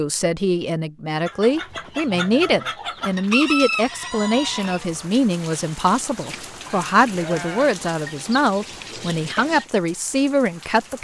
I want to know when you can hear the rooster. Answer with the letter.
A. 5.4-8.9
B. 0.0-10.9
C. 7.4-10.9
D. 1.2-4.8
D.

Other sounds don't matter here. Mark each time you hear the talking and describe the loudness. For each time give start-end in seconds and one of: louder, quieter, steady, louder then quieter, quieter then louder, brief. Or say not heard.
0.0-10.9 steady.